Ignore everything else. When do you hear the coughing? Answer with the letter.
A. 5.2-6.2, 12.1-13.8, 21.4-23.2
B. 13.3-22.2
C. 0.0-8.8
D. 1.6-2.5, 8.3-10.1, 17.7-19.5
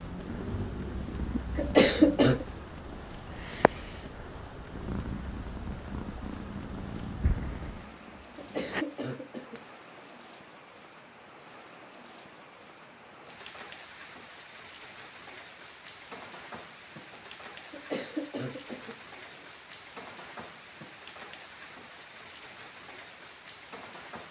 D.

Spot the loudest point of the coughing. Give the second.
2 s.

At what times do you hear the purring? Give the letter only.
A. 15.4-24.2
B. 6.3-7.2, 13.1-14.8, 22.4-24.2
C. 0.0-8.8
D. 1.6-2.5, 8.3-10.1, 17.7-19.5
C.